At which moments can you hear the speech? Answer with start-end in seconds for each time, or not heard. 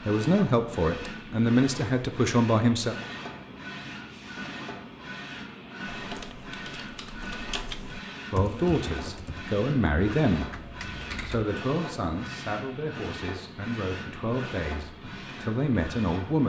0.0-3.0, 8.3-16.4.